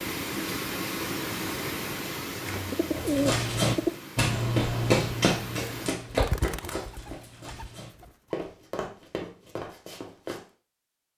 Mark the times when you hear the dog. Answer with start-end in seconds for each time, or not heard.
not heard.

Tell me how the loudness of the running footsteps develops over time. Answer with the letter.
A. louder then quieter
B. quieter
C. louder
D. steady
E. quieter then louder
B.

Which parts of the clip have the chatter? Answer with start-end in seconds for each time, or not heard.
not heard.